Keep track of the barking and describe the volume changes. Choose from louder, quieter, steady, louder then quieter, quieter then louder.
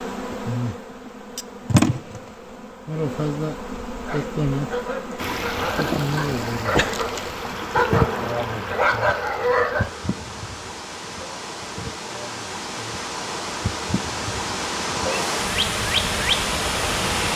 louder.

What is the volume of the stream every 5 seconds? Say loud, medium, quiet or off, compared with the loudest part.
off, medium, medium, loud.